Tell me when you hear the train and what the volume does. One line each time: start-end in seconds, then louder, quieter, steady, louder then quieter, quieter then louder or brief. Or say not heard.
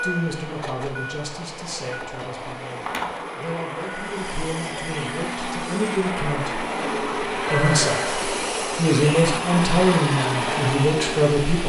0.0-11.6 louder.